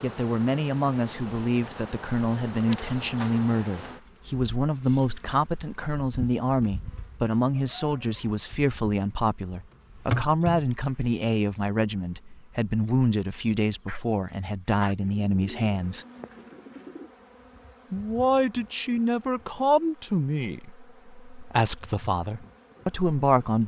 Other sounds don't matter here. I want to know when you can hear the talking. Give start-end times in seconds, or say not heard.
0.0-16.1, 17.9-23.6.